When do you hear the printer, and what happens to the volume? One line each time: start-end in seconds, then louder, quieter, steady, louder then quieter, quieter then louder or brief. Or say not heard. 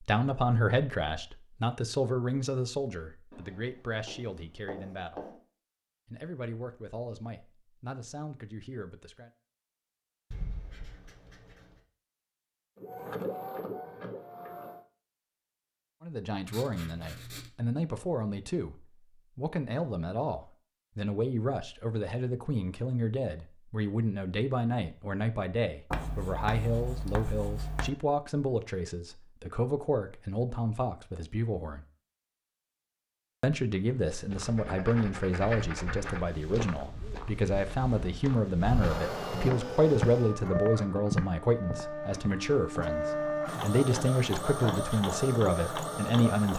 12.8-14.8 brief
38.6-46.5 steady.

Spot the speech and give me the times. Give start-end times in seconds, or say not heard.
0.0-5.3, 6.0-9.3, 16.0-31.9, 33.4-46.5.